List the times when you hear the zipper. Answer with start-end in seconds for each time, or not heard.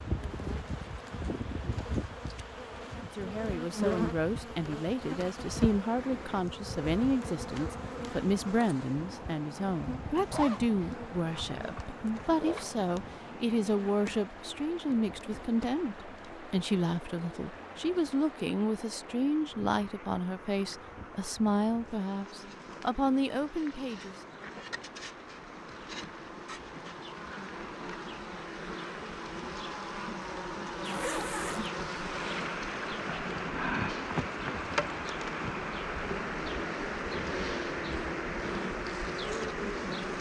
10.2-12.8, 30.8-31.7.